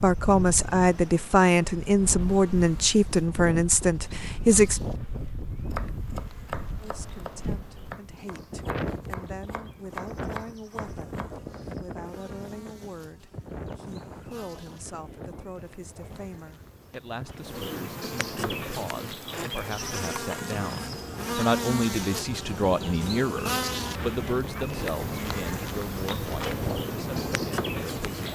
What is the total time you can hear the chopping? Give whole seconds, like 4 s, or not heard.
6 s.